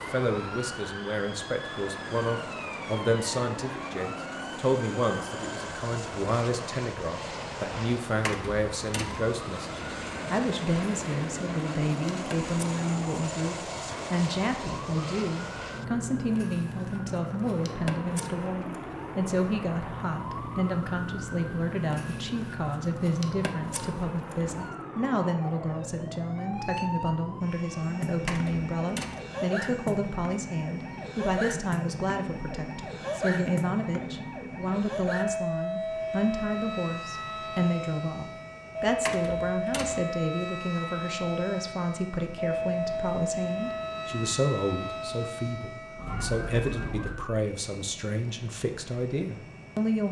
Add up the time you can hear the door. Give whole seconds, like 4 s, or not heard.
3 s.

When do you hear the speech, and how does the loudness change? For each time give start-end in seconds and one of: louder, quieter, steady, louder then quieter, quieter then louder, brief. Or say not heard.
0.0-50.0 steady.